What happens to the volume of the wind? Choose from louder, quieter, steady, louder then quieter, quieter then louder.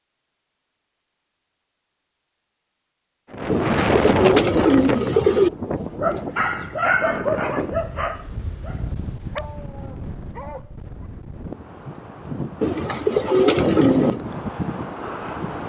quieter then louder.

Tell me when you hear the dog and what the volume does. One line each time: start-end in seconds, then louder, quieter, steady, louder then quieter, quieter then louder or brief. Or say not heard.
6.0-10.9 quieter.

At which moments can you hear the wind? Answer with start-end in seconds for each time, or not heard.
3.3-15.6.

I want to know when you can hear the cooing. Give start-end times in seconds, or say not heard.
3.5-5.5, 12.6-14.2.